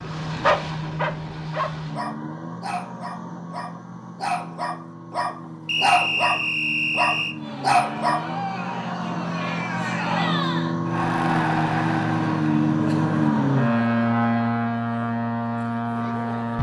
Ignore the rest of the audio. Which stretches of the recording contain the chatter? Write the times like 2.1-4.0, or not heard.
7.3-16.5.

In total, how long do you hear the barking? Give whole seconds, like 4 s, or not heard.
8 s.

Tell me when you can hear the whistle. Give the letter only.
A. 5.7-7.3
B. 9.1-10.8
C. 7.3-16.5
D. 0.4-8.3
A.